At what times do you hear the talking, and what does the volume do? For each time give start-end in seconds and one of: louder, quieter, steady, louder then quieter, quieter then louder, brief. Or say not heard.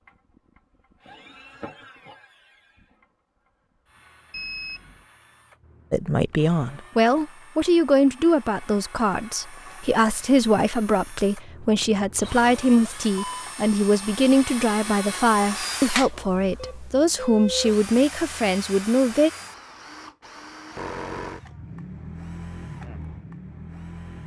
5.9-19.3 steady.